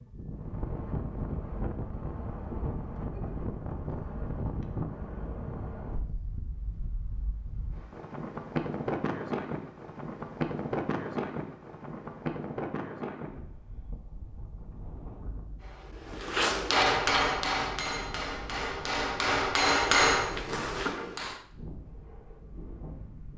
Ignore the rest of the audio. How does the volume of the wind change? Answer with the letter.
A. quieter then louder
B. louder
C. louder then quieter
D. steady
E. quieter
E.